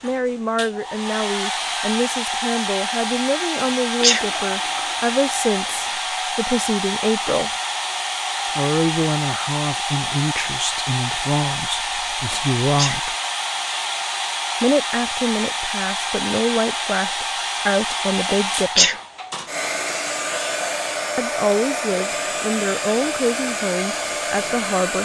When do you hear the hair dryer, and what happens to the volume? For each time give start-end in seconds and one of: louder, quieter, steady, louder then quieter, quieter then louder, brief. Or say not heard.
0.0-24.9 steady.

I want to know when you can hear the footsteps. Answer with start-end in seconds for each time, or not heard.
not heard.